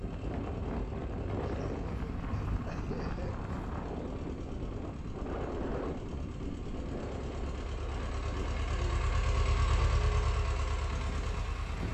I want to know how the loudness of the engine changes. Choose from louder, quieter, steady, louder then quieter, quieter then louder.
louder.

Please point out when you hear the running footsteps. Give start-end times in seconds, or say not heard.
not heard.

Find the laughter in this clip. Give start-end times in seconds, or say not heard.
1.4-3.4, 8.3-9.9.